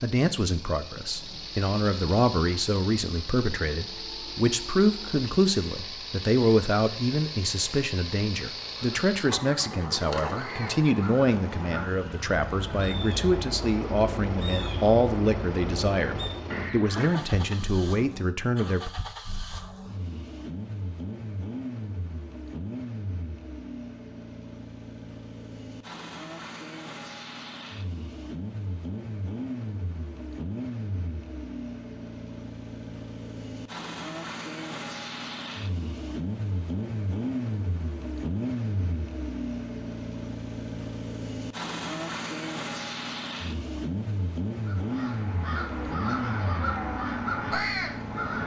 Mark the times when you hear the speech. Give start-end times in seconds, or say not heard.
0.0-18.9.